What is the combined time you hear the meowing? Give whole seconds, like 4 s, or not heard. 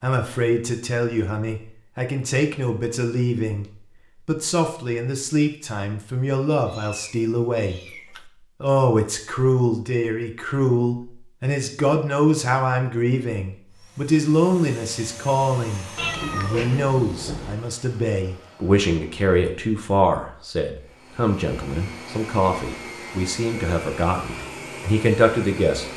3 s.